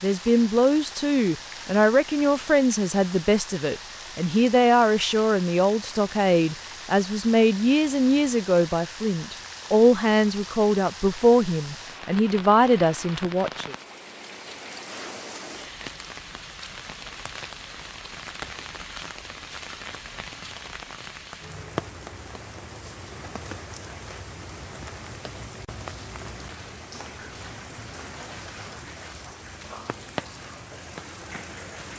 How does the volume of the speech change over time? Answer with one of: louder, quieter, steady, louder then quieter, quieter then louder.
steady.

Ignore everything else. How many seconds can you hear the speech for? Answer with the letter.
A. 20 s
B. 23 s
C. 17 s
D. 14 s
D.